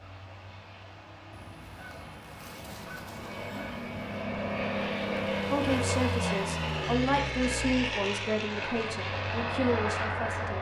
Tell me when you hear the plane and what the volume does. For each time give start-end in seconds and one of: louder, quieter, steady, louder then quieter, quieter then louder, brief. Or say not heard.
0.0-10.5 louder.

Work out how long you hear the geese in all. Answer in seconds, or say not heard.
3 s.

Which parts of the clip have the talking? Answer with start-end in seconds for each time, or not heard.
5.5-10.5.